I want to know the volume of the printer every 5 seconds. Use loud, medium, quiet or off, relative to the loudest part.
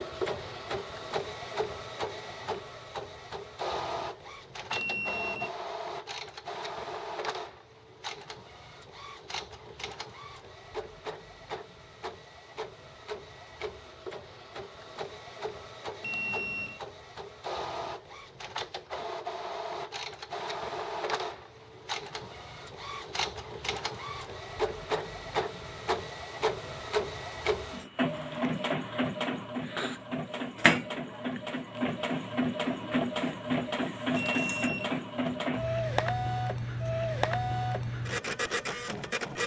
medium, medium, quiet, medium, medium, loud, loud, loud.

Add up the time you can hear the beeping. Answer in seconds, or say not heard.
2 s.